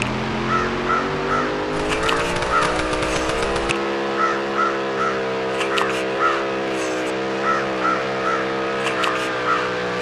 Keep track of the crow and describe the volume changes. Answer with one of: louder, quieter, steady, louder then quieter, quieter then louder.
steady.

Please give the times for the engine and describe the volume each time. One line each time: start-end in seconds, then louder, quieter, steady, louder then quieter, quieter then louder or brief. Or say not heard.
0.0-9.9 steady.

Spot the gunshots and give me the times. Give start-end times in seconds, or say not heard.
1.7-3.8.